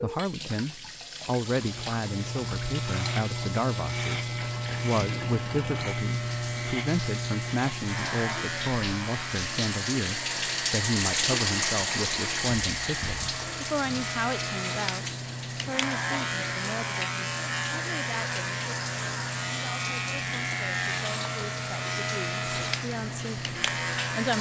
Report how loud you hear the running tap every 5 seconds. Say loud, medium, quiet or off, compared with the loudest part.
medium, medium, loud, medium, medium.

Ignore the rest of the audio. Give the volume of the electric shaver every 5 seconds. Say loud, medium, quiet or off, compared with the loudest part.
loud, loud, medium, loud, loud.